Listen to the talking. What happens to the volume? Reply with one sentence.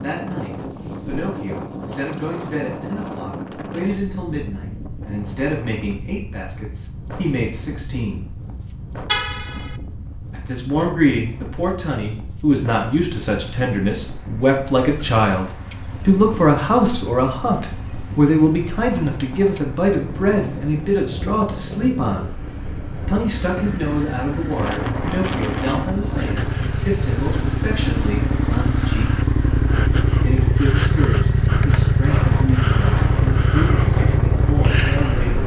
The loudness of the talking goes up, then down.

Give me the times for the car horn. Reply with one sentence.
The car horn can be heard from 9.1 to 9.8 s.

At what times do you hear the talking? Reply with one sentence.
The talking can be heard from 0.0 to 8.3 s, from 10.3 to 22.4 s, from 23.1 to 29.1 s and from 30.2 to 35.4 s.